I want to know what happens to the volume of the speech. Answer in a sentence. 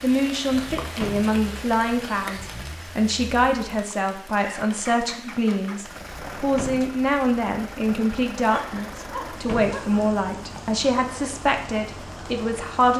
The loudness of the speech stays about the same.